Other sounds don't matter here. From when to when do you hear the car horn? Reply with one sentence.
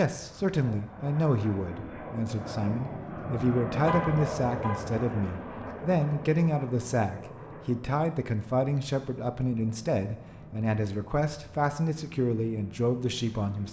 The car horn can be heard from 3.9 to 4.8 s.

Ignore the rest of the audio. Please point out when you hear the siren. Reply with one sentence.
You can't hear the siren here.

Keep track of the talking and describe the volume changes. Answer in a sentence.
The loudness of the talking stays about the same.